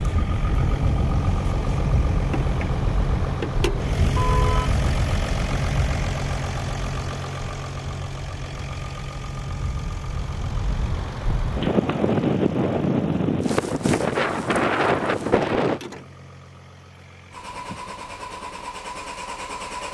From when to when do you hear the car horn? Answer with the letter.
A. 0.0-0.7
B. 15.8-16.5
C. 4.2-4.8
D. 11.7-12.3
C.